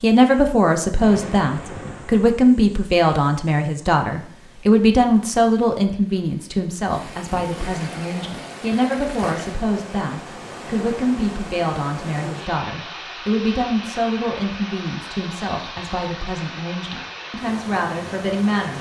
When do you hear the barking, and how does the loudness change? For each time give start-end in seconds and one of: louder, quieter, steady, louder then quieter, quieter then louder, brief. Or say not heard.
not heard.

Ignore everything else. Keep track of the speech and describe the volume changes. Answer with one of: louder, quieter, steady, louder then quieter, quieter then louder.
quieter.